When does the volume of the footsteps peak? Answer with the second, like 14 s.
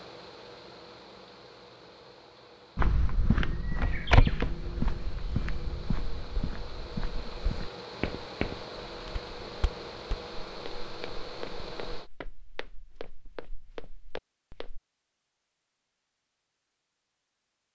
4 s.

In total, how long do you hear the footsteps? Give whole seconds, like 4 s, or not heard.
12 s.